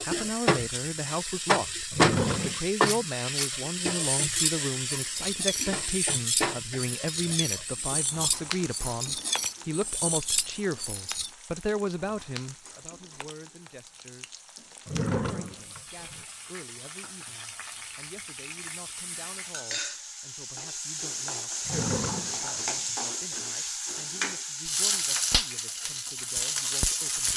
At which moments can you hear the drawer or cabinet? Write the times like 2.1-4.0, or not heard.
1.9-2.6, 14.8-16.2, 21.6-22.9.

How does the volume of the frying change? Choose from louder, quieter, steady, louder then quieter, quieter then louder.
quieter then louder.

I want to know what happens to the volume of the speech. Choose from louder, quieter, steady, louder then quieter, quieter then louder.
quieter.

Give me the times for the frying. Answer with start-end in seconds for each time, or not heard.
0.0-27.3.